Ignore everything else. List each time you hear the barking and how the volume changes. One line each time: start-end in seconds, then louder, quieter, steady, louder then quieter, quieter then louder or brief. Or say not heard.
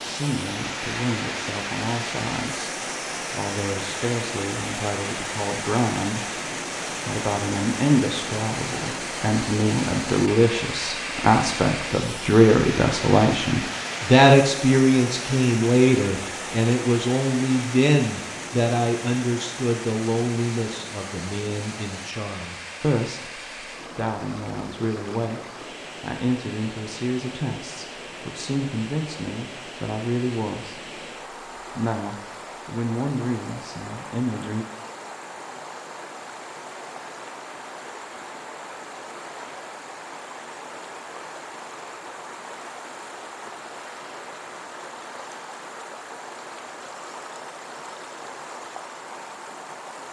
not heard.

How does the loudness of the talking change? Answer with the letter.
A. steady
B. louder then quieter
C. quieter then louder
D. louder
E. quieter
B.